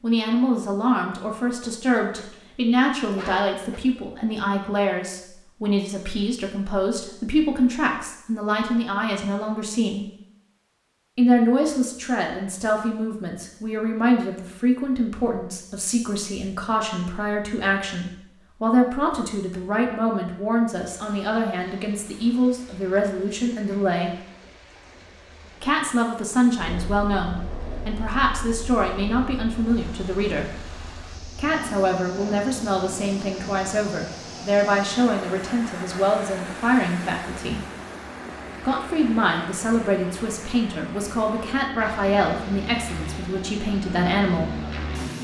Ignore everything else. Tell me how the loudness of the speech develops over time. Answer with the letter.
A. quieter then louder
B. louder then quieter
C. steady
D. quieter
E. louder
C.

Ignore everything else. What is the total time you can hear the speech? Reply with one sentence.
The speech can be heard for 40 seconds in total.